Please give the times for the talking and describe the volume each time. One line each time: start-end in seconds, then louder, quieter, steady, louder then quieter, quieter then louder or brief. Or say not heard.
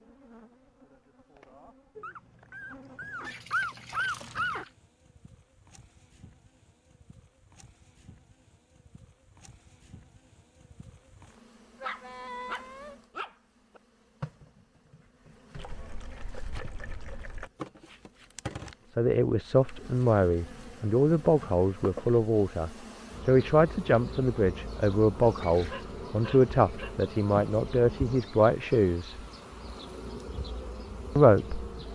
18.9-29.1 steady
31.1-31.6 brief.